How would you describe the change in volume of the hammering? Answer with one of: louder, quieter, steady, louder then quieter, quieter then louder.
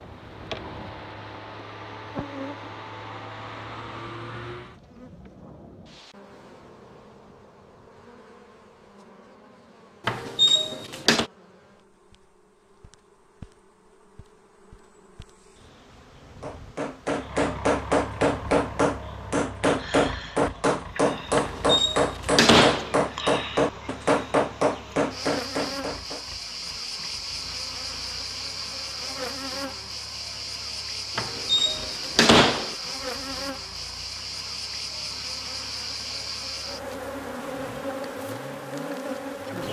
steady.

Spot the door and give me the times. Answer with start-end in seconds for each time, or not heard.
10.1-11.2, 21.4-22.9, 31.1-32.8.